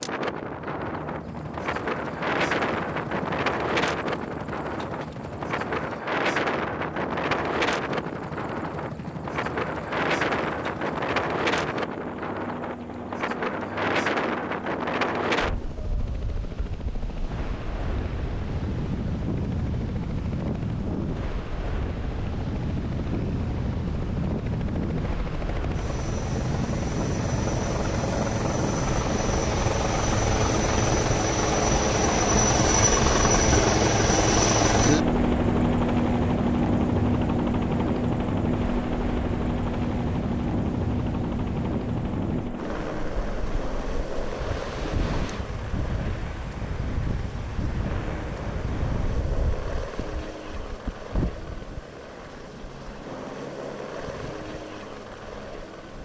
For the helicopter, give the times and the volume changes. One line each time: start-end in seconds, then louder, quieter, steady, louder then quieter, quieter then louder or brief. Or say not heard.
0.1-56.0 louder then quieter.